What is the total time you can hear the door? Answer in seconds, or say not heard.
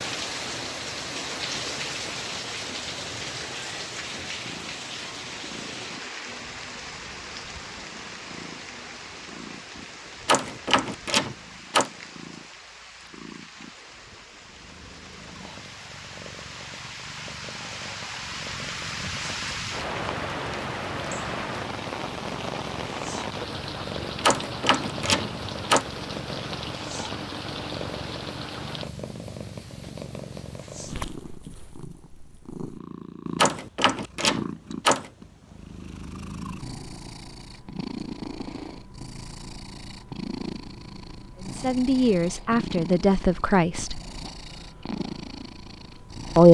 5 s.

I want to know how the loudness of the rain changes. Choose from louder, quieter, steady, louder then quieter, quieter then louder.
quieter then louder.